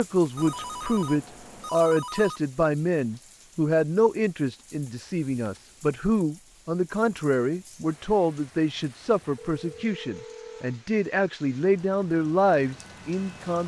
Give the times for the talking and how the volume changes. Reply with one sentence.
The talking can be heard from 0.0 to 13.6 s, at a steady volume.